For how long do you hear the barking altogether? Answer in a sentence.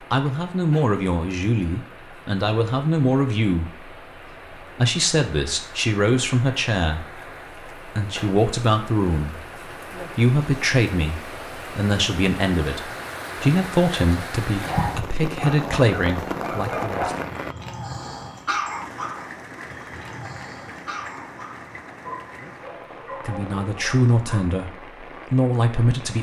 You can hear the barking for 10 seconds altogether.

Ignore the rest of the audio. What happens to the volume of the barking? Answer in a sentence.
The volume of the barking goes down.